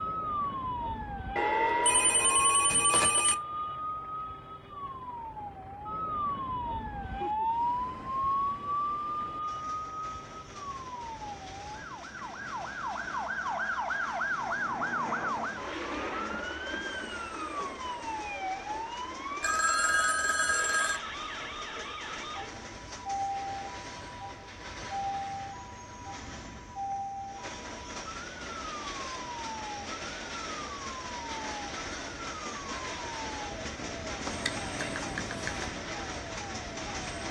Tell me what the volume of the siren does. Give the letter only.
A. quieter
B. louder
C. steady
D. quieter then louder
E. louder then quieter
A.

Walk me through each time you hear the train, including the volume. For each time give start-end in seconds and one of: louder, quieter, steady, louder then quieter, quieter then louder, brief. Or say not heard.
6.9-37.2 louder.